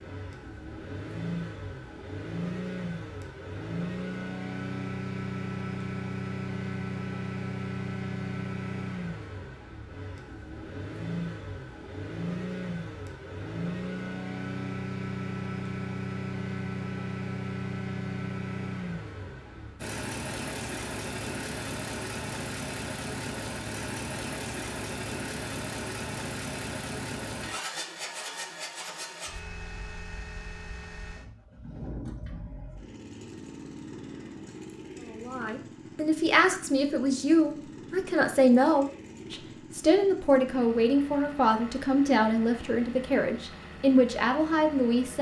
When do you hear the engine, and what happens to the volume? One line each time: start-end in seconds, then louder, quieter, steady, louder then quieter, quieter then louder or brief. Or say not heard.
0.0-45.1 quieter.